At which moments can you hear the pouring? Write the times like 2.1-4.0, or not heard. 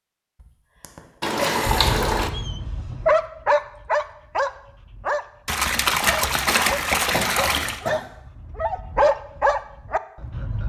1.2-2.3, 5.5-7.8.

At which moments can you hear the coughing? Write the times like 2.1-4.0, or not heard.
0.4-1.9, 7.1-8.1.